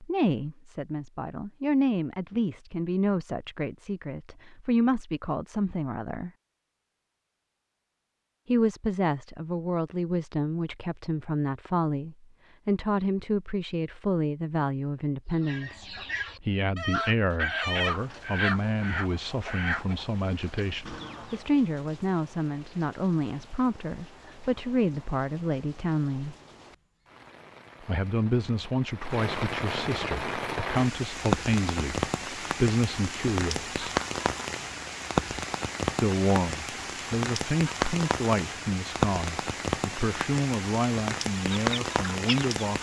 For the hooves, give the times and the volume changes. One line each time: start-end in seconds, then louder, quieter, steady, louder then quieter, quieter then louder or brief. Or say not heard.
not heard.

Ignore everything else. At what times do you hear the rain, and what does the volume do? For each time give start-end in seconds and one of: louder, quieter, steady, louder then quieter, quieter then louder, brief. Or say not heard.
17.8-42.7 louder.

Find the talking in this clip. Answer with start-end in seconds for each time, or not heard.
0.0-6.3, 8.4-26.4, 27.8-33.8, 36.0-42.7.